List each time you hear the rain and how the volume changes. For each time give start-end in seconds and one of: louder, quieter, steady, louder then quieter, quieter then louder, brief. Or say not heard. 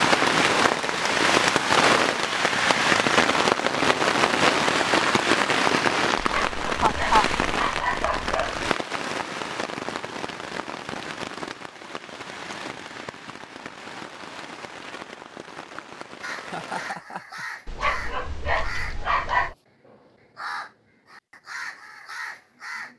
0.0-16.9 quieter.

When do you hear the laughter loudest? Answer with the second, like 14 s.
7 s.